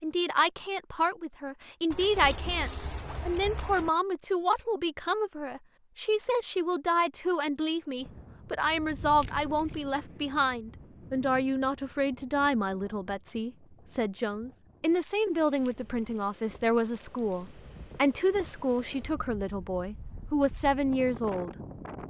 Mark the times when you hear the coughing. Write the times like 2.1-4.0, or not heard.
not heard.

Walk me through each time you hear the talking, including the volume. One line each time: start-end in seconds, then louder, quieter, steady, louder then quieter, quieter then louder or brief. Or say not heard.
0.0-21.6 steady.